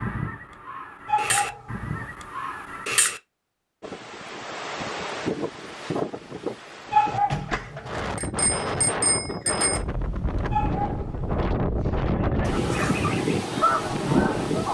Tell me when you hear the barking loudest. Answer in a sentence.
The volume of the barking peaks at 7 seconds.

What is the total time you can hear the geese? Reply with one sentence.
The geese can be heard for 6 seconds in total.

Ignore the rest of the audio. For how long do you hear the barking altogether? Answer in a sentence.
The barking can be heard for 3 seconds in total.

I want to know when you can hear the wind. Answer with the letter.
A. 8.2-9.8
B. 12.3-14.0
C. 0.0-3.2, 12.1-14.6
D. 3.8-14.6
D.